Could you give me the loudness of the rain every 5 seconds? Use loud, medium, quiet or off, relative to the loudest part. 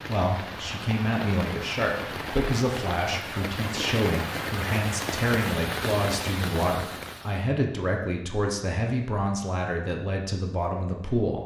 loud, loud, off.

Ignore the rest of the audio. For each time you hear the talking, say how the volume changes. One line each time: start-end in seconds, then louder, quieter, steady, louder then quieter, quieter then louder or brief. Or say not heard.
0.0-11.4 steady.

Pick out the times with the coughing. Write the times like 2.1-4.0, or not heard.
not heard.